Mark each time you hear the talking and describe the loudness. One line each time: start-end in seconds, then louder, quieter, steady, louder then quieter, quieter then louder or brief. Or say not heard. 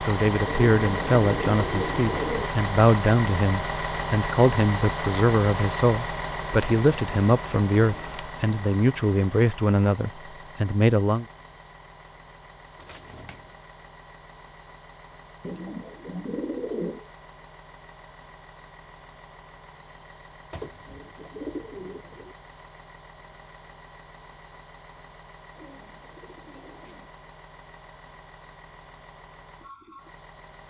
0.0-11.2 steady.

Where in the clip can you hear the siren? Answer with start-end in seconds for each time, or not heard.
not heard.